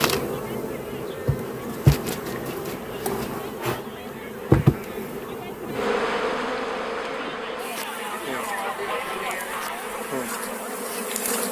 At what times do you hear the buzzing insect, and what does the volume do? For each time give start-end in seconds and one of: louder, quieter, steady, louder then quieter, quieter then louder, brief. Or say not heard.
0.0-11.4 quieter.